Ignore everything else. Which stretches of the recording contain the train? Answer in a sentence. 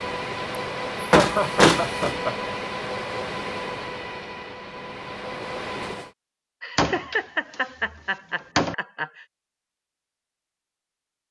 You can hear the train from 0.0 to 6.2 s.